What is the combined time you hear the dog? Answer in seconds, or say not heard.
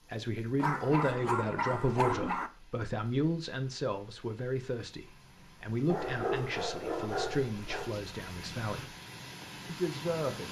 4 s.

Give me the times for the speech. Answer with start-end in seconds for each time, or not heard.
0.1-8.9, 9.7-10.4.